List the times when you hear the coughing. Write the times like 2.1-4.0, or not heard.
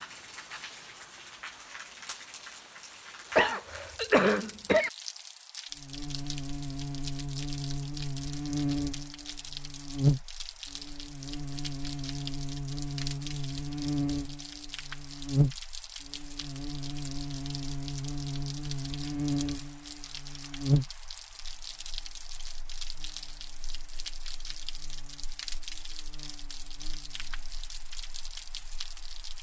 3.4-4.9.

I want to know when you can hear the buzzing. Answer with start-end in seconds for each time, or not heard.
5.8-29.3.